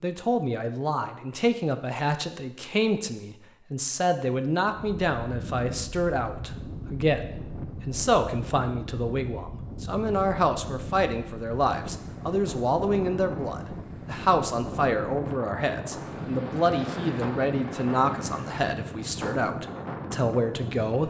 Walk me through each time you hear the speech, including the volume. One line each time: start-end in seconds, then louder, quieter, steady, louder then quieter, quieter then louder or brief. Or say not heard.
0.0-21.0 steady.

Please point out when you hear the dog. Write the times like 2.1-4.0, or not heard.
not heard.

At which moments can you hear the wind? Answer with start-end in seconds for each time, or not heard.
4.7-21.0.